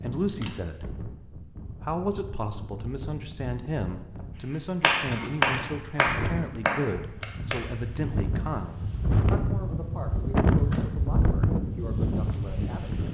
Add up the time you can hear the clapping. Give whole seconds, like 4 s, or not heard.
3 s.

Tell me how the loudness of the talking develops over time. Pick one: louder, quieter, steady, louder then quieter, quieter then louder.
quieter.